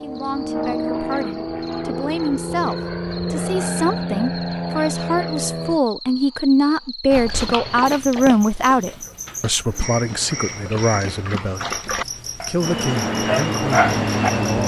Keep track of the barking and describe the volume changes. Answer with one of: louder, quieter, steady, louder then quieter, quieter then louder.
quieter then louder.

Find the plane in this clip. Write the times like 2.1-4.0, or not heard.
0.0-5.8, 12.6-14.6.